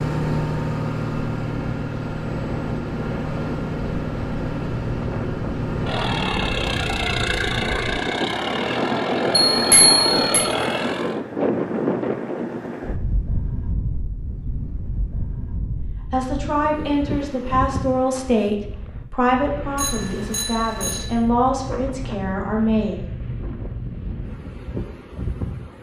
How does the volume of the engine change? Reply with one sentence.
The volume of the engine stays about the same.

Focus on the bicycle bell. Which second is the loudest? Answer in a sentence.
The loudest moment of the bicycle bell is at 10 seconds.